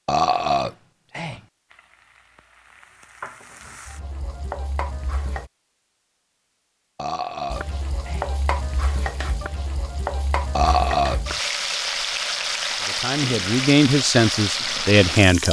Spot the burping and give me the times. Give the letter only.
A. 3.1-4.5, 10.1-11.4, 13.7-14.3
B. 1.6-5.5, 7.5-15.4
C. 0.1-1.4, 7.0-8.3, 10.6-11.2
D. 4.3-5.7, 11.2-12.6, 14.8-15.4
C.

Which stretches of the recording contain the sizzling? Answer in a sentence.
You can hear the sizzling from 1.6 to 5.5 s and from 7.5 to 15.4 s.